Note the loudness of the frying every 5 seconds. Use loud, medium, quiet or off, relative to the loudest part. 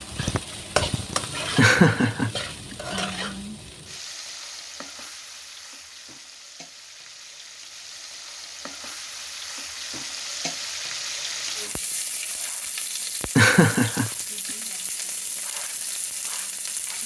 loud, medium, loud, loud.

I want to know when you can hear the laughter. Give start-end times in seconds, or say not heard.
1.6-2.8, 13.3-14.1.